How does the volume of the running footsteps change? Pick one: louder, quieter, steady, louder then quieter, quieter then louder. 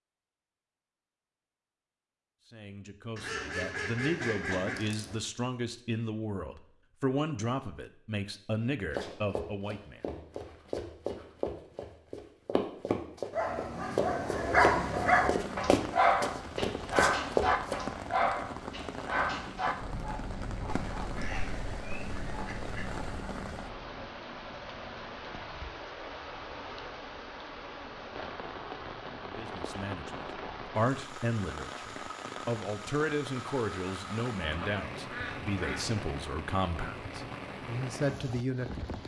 louder.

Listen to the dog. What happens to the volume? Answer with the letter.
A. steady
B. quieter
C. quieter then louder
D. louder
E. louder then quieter
B.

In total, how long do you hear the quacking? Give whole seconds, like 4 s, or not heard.
6 s.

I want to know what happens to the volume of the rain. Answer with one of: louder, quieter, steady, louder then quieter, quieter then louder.
steady.